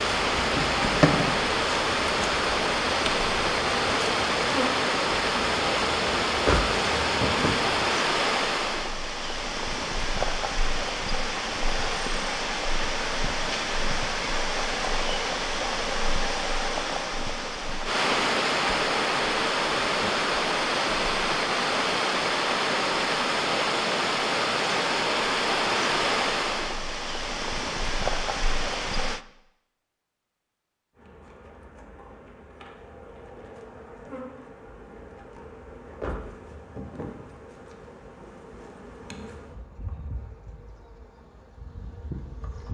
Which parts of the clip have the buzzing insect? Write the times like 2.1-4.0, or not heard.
0.0-8.0, 30.9-42.6.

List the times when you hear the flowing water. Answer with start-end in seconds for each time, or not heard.
0.0-29.2.